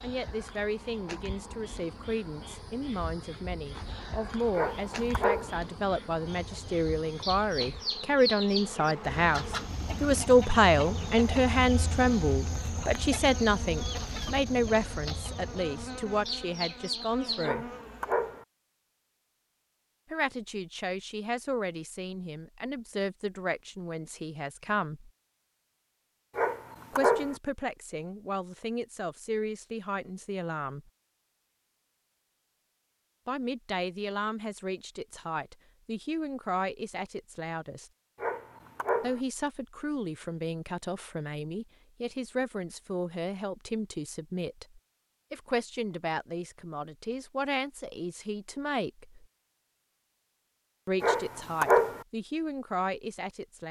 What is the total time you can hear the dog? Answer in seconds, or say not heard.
5 s.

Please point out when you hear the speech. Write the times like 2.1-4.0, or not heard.
0.0-17.7, 20.1-25.1, 26.9-30.8, 33.2-37.9, 39.0-49.2, 50.9-53.6.